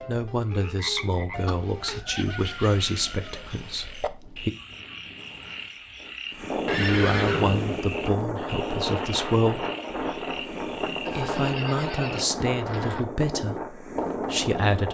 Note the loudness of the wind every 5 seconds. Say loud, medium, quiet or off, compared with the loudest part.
quiet, loud, loud.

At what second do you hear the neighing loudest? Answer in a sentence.
The volume of the neighing peaks at 7 seconds.